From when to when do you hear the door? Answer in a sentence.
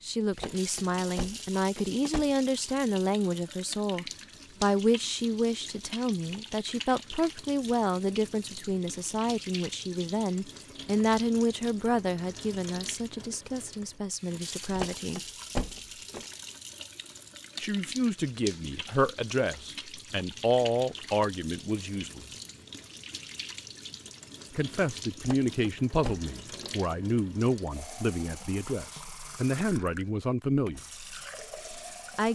The door can be heard from 0.3 to 2.3 s, from 14.7 to 16.2 s and from 25.2 to 26.8 s.